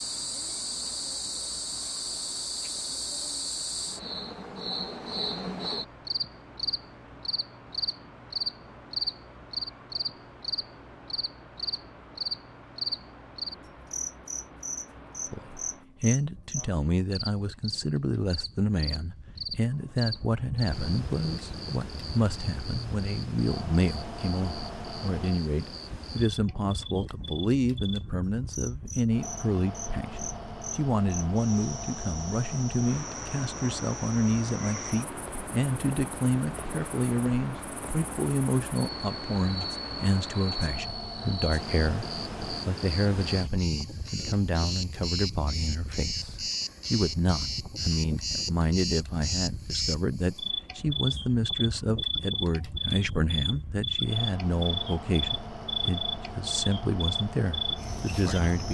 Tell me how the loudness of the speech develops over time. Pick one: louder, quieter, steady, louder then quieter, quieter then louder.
steady.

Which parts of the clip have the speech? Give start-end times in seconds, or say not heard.
15.3-58.6.